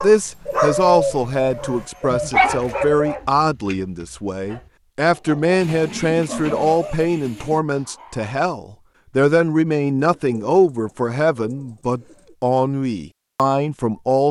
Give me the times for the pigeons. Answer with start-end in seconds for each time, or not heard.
0.5-3.2, 5.6-7.6, 9.9-12.3.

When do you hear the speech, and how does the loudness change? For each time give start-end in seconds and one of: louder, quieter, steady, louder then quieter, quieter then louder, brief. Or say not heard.
0.0-14.2 steady.